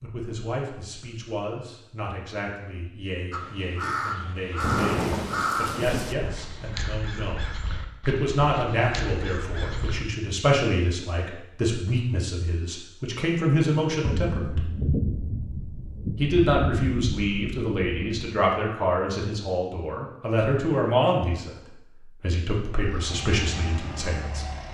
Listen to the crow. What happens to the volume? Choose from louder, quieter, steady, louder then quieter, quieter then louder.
quieter.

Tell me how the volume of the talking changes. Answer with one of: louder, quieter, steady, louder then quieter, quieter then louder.
louder.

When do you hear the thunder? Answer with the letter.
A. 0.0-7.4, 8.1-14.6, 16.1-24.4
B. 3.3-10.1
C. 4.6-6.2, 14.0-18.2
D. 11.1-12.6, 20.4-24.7
C.